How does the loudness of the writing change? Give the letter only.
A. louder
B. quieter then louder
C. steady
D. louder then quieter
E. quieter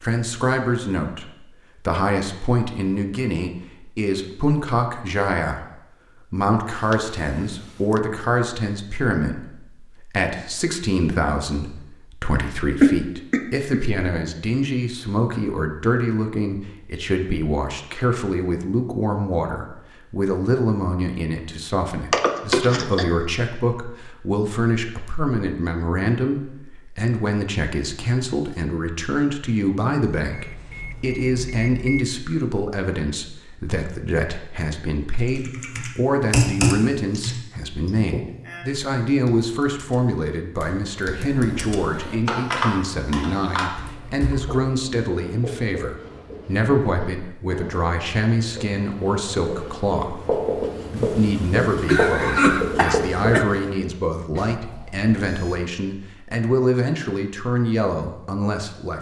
A.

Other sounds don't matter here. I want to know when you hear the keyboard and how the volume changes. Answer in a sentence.
The keyboard can be heard from 35.2 to 44.6 s, getting quieter then louder.